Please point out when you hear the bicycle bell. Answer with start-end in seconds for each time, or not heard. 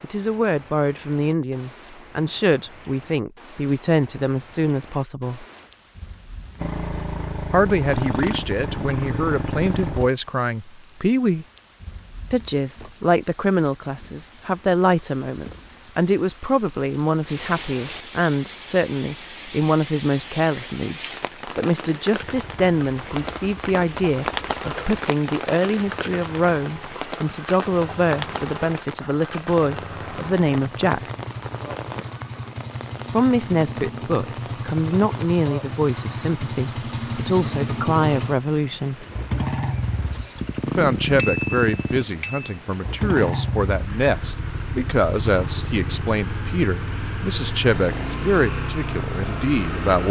41.1-42.5.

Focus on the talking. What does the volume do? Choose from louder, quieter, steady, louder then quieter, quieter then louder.
steady.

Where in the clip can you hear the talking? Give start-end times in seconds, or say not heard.
0.0-5.5, 7.5-11.4, 12.3-31.0, 33.1-39.0, 40.6-50.0.